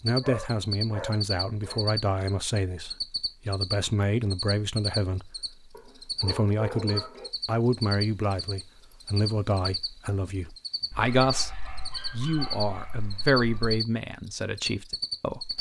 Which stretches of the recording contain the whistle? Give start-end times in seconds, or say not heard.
not heard.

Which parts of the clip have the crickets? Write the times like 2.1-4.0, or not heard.
0.0-15.5.